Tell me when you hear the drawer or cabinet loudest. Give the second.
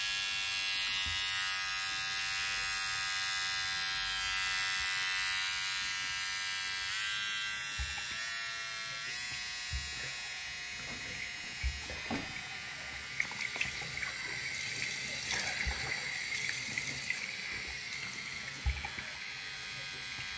12 s.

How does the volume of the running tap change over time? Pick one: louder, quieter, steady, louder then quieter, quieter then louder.
louder.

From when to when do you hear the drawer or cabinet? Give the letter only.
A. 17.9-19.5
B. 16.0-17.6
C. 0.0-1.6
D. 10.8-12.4
D.